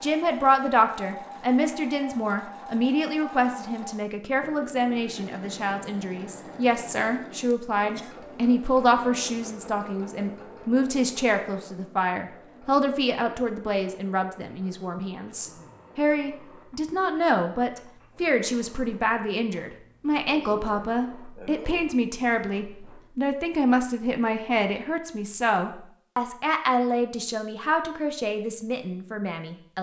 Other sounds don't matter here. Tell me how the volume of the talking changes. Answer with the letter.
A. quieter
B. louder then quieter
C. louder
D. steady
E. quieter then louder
D.